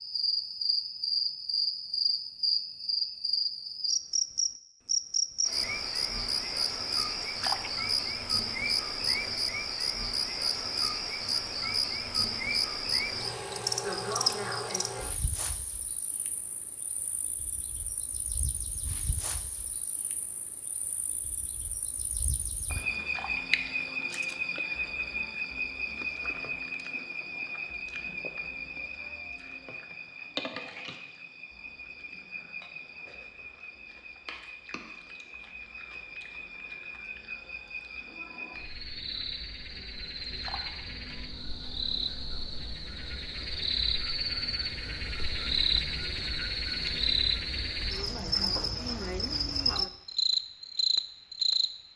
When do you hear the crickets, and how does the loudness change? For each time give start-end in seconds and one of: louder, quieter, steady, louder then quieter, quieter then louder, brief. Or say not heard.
0.0-51.9 quieter then louder.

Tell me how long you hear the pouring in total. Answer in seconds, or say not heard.
2 s.